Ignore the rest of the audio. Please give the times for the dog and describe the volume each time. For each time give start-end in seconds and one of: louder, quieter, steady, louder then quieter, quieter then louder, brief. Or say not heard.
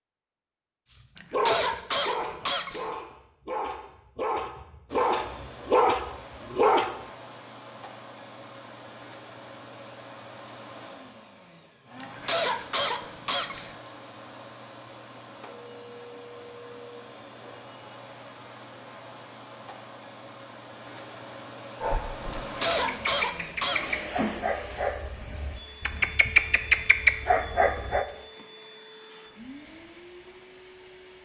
0.9-6.9 quieter then louder
21.8-28.1 louder.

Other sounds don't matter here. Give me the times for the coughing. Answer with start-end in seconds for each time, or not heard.
1.1-2.9, 12.0-13.8, 22.4-24.1.